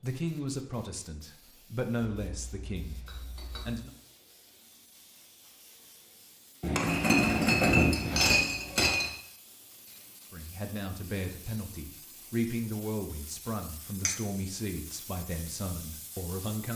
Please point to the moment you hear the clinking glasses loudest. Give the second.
8 s.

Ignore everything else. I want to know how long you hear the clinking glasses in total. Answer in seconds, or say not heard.
4 s.